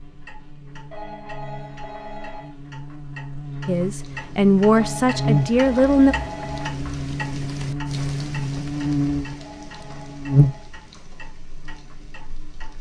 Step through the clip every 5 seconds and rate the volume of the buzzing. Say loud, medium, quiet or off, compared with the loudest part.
quiet, loud, loud.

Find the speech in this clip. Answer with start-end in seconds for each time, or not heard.
3.6-6.2.